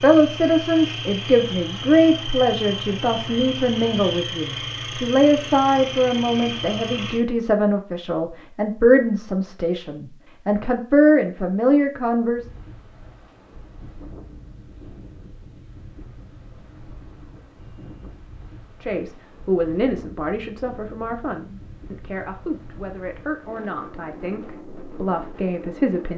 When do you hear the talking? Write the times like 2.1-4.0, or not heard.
0.0-12.4, 18.8-26.1.